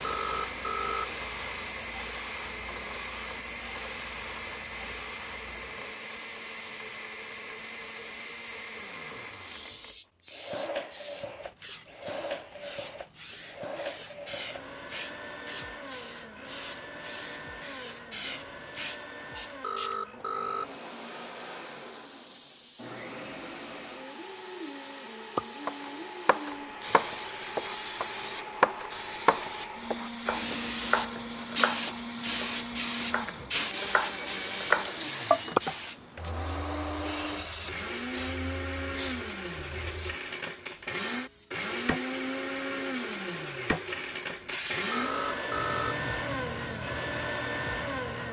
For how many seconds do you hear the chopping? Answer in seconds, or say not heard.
10 s.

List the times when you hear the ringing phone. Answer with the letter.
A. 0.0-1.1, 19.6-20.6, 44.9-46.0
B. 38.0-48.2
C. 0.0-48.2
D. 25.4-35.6
A.